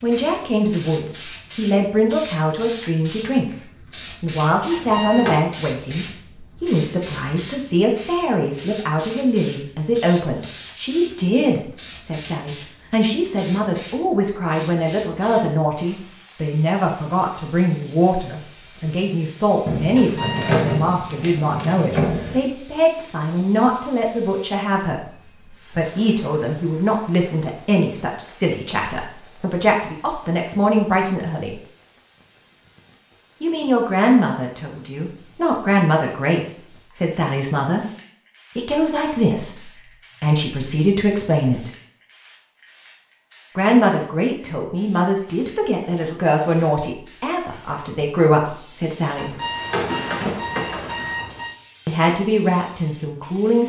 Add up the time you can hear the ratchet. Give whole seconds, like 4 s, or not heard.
3 s.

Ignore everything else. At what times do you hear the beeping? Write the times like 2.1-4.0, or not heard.
4.7-5.3, 19.9-20.8, 49.1-51.5.